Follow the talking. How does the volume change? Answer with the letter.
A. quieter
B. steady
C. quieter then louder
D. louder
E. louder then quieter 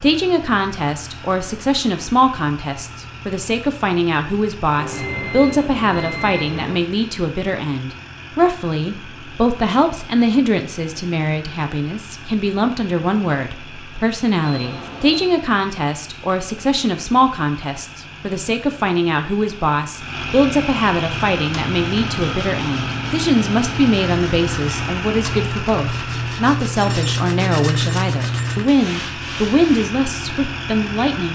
B.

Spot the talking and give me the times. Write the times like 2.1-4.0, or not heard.
0.0-31.2.